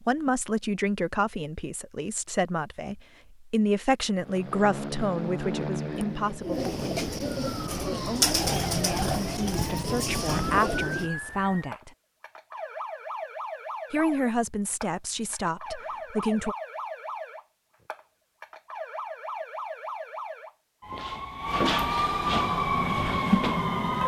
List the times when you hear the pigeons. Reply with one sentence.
You can hear the pigeons from 5.9 to 11.1 s.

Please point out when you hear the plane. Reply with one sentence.
The plane can be heard from 4.2 to 6.5 s.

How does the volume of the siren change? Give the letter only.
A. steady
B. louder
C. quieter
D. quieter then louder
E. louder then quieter
B.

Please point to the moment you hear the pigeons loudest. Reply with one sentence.
The loudest moment of the pigeons is at 8 seconds.